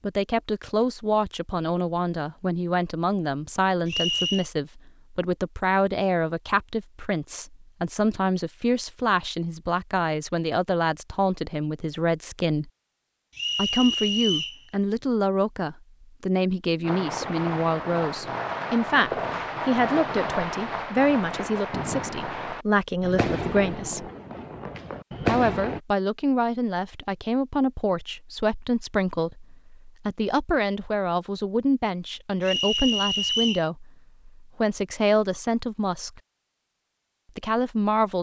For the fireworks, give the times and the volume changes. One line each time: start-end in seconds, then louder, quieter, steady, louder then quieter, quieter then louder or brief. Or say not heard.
16.8-25.8 steady.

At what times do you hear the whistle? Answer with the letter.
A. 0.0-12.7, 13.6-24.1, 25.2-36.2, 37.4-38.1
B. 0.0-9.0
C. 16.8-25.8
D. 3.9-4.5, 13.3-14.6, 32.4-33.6
D.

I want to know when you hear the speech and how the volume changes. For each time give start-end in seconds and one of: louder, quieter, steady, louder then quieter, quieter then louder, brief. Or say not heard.
0.0-12.7 steady
13.6-24.1 steady
25.2-36.2 steady
37.4-38.1 brief.